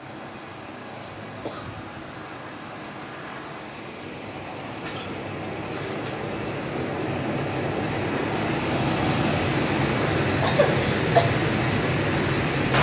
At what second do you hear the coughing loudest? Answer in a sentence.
The volume of the coughing peaks at 11 seconds.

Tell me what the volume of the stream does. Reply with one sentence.
The volume of the stream goes up.